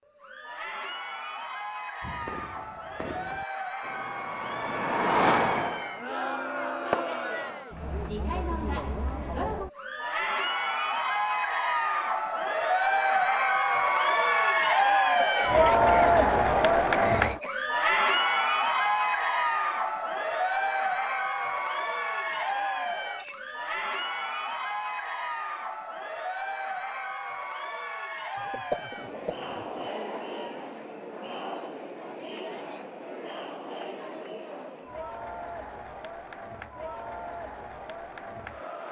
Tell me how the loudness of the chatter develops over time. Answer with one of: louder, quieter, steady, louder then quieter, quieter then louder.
louder then quieter.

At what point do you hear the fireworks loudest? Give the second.
5 s.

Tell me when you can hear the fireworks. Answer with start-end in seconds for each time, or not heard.
2.0-8.1.